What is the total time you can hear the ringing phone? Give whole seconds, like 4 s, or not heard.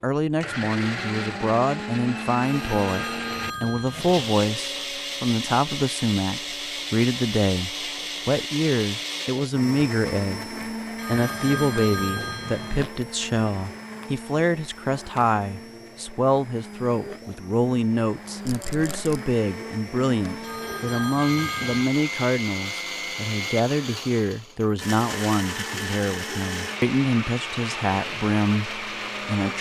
5 s.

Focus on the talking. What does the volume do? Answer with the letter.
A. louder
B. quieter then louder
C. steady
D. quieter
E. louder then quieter
C.